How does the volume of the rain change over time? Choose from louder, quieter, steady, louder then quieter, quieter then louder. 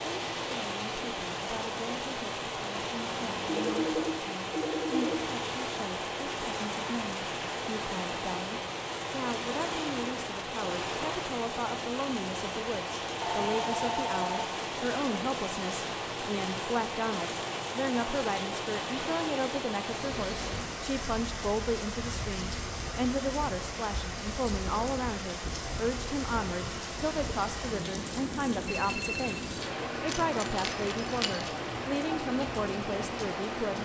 steady.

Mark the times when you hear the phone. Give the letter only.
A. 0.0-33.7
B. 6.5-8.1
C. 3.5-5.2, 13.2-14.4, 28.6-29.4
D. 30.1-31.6
C.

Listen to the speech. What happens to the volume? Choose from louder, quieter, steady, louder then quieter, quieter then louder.
louder.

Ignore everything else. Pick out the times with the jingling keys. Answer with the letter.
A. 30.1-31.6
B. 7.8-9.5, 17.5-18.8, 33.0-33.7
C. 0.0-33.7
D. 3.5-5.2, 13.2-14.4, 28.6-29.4
A.